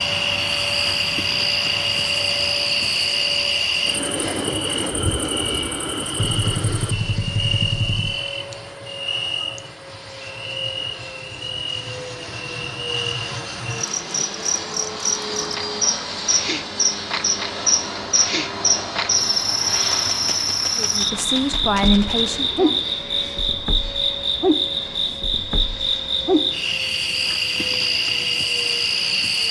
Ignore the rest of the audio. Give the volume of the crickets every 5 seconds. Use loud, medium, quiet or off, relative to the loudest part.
loud, medium, medium, loud, loud, loud.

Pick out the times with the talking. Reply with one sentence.
You can hear the talking from 20.8 to 22.8 s.